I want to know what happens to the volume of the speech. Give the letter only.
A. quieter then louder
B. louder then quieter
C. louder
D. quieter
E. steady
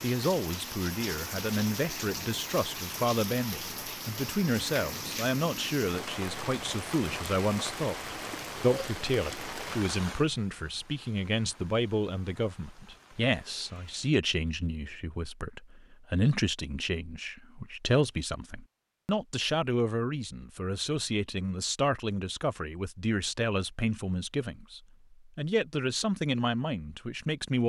E.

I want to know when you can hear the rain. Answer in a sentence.
You can hear the rain from 0.0 to 14.2 s.